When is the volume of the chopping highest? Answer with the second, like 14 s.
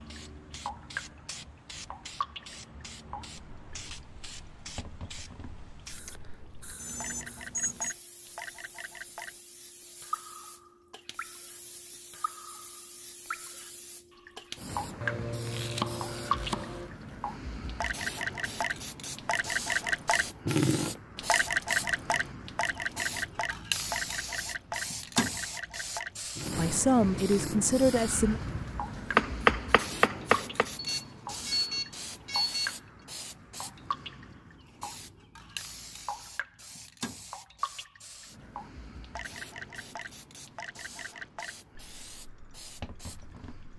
29 s.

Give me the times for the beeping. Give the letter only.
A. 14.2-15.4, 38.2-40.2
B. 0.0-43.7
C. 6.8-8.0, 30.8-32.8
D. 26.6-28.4
C.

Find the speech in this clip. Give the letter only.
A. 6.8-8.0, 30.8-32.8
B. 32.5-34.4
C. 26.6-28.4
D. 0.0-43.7
C.